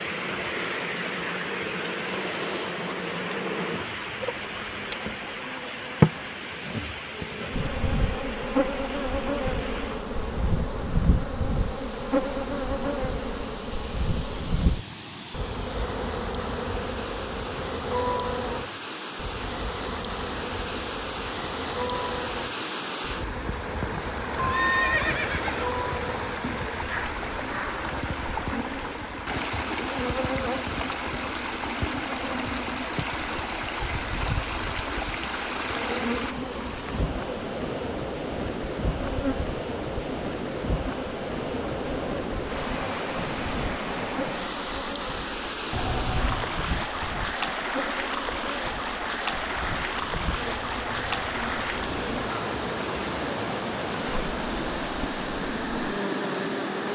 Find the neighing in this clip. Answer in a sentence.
You can hear the neighing from 24.4 to 25.8 s and from 45.7 to 46.5 s.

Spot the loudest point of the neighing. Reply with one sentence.
The volume of the neighing peaks at 25 seconds.